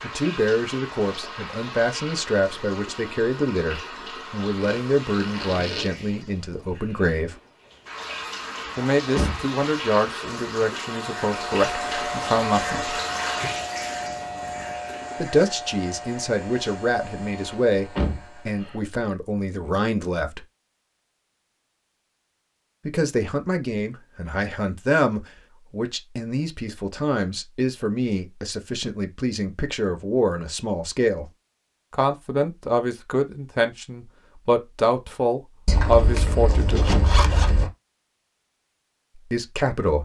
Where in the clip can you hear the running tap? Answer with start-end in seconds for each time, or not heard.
0.0-15.2.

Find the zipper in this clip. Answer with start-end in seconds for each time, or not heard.
4.6-5.9, 35.6-37.7.